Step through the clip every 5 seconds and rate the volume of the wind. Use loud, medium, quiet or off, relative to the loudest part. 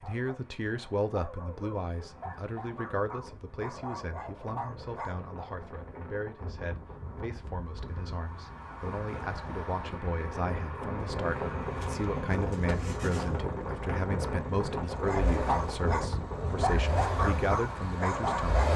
quiet, medium, loud, loud.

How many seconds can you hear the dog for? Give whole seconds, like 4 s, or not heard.
9 s.